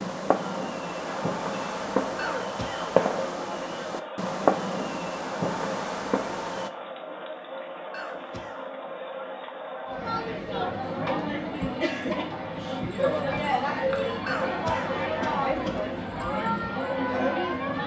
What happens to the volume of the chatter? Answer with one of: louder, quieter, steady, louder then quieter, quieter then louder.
louder.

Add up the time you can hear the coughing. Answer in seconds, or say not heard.
3 s.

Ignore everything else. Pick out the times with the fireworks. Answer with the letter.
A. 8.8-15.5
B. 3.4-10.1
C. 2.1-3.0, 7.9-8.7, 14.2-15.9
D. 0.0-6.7
D.